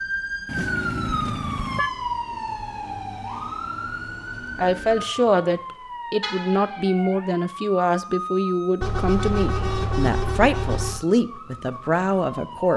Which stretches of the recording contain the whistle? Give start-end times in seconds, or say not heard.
not heard.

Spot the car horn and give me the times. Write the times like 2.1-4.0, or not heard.
0.5-1.9, 6.2-6.9, 8.8-11.1.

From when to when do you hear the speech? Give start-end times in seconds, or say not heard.
4.5-12.7.